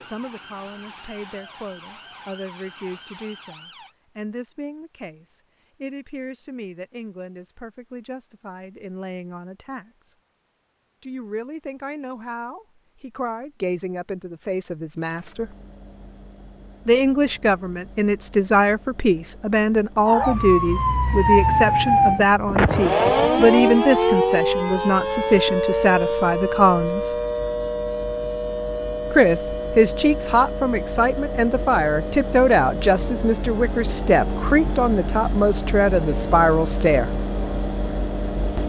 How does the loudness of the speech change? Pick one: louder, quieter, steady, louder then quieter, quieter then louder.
louder.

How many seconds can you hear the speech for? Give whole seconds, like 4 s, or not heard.
33 s.